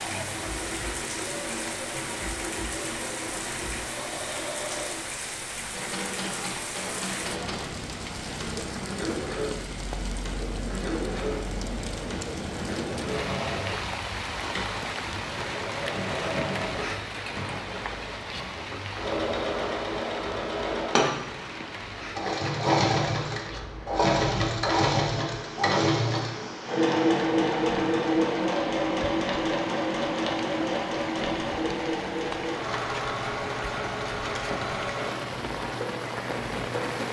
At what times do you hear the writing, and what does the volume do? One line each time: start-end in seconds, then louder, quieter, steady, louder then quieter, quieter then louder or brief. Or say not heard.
not heard.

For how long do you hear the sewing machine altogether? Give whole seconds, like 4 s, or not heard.
37 s.